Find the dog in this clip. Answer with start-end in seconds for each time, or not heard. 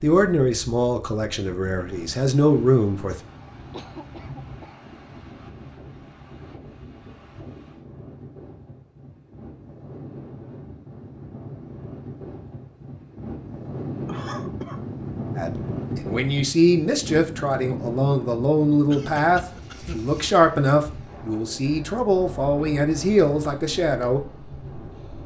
not heard.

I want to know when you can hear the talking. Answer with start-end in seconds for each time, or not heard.
0.0-3.1, 15.3-24.2.